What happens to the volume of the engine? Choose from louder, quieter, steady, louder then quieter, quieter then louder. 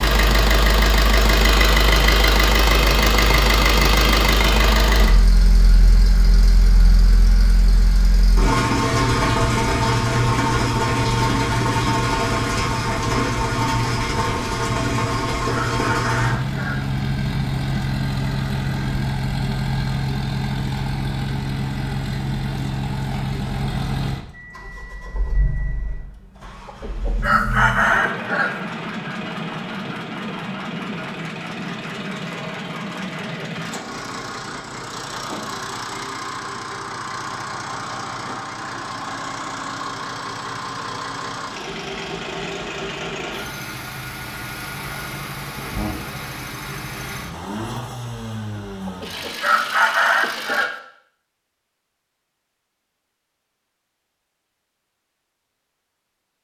quieter.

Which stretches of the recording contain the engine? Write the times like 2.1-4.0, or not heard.
0.0-50.6.